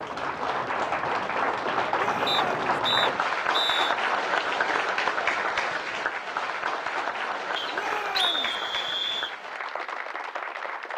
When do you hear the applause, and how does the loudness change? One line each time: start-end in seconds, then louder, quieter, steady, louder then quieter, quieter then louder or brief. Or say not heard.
0.0-10.9 quieter.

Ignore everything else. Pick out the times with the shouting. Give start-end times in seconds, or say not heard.
1.9-2.8, 7.7-8.6.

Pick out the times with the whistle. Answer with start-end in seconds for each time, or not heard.
2.2-4.0, 7.5-9.3.